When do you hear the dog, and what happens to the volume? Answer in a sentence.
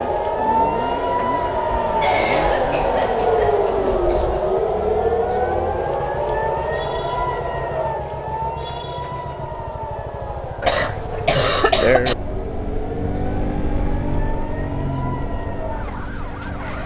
You can't hear the dog here.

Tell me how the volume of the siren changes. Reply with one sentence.
The loudness of the siren goes down.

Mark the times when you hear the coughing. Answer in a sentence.
You can hear the coughing from 2.0 to 4.6 s and from 10.6 to 12.2 s.